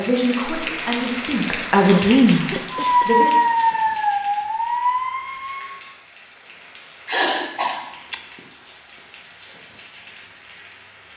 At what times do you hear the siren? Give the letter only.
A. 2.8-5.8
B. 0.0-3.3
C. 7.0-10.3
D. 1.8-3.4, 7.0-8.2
A.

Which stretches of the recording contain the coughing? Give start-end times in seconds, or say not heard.
1.8-3.4, 7.0-8.2.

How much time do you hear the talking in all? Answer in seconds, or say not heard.
3 s.